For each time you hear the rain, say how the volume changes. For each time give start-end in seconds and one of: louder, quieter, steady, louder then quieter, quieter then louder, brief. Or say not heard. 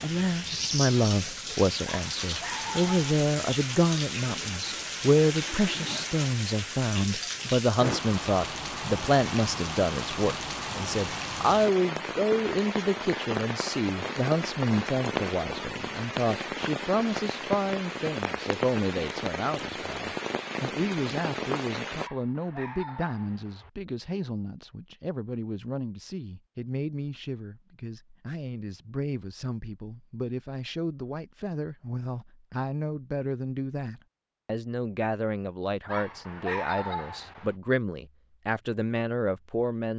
0.0-22.1 steady.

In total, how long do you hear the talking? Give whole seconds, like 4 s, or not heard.
40 s.